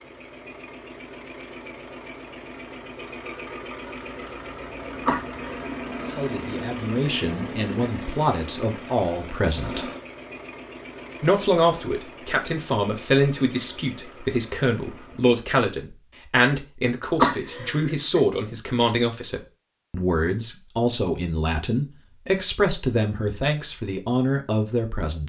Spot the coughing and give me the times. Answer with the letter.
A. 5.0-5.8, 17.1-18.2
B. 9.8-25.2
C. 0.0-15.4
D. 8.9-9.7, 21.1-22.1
A.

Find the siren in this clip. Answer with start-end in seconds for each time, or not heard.
not heard.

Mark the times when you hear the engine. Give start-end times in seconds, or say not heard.
0.0-15.4.